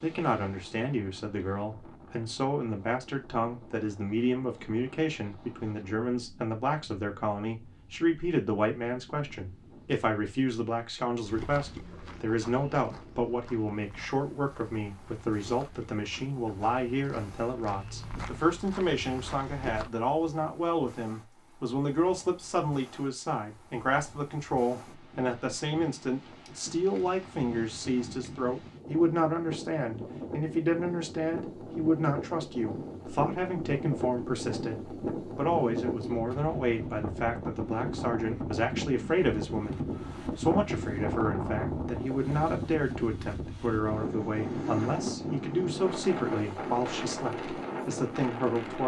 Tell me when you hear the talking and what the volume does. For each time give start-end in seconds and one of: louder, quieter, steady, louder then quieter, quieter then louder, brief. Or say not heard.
0.0-48.8 steady.